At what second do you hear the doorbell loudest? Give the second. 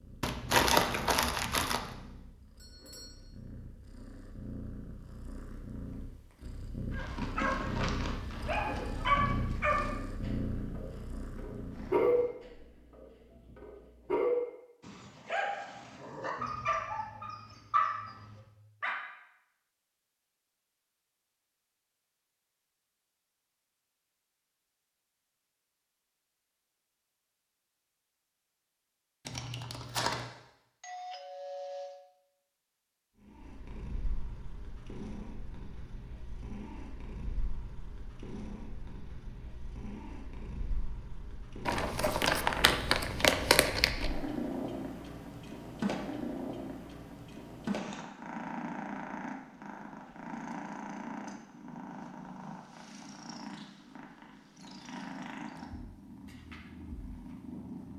32 s.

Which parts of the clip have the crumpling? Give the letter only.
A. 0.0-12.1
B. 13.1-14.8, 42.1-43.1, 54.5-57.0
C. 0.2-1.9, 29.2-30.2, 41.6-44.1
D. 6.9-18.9
C.